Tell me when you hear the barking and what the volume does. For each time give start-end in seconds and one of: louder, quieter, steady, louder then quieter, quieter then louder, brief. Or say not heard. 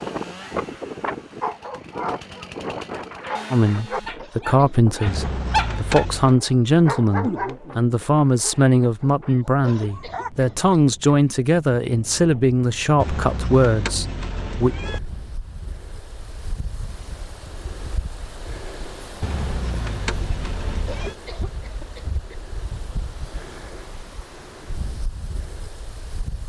1.4-10.3 louder then quieter.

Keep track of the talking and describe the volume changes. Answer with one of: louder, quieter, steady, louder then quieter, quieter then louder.
steady.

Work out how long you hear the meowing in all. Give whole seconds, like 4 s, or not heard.
5 s.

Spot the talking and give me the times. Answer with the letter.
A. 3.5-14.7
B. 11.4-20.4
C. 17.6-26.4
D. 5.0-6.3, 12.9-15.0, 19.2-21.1
A.